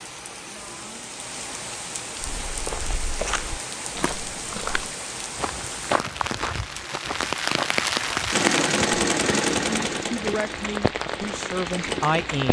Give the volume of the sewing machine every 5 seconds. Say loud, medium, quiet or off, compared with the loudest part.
off, loud, quiet.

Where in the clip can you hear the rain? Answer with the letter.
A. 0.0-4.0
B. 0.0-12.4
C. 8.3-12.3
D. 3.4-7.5
B.